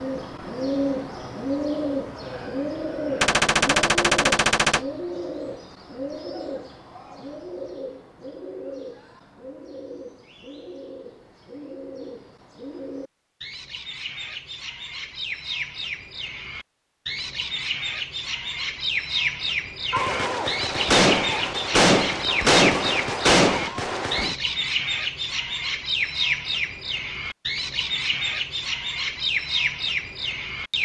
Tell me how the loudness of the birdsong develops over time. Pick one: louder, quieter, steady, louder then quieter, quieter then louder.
quieter then louder.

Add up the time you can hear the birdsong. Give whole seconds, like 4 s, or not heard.
31 s.